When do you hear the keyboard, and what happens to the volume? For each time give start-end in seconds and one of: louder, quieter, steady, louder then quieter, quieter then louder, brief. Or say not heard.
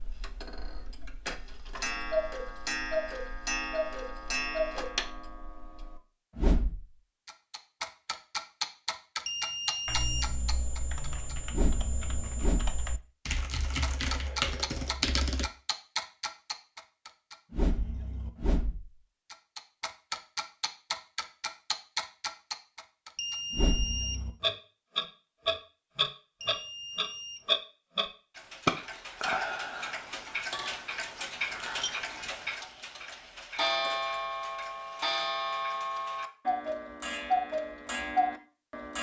9.8-15.5 louder.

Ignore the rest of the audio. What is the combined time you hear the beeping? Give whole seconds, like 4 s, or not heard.
3 s.